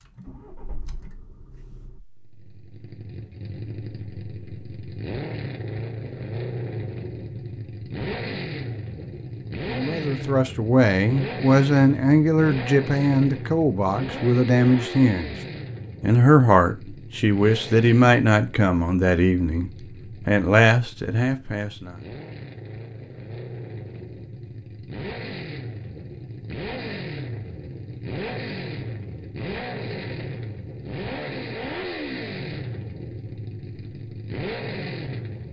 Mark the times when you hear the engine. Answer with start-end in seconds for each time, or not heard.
0.0-35.4.